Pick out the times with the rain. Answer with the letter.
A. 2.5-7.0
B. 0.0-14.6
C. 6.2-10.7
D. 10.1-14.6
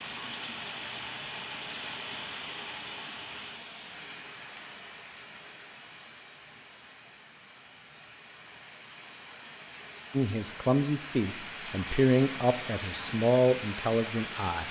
B.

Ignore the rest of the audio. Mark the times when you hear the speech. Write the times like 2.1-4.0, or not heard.
10.1-14.6.